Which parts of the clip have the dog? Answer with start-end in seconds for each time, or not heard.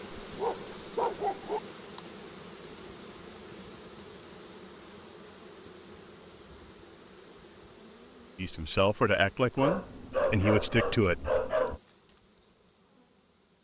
0.1-1.6, 9.6-11.8.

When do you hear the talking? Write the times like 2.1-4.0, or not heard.
8.3-11.3.